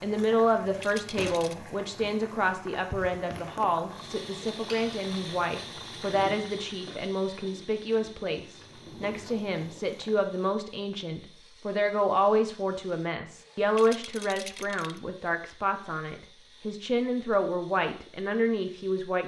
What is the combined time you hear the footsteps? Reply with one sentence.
The footsteps can't be heard in this clip.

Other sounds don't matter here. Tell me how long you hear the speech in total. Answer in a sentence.
You can hear the speech for 19 seconds altogether.